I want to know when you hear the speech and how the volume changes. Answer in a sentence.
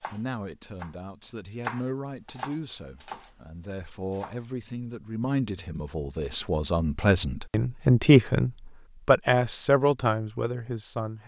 The speech can be heard from 0.0 to 11.2 s, getting louder.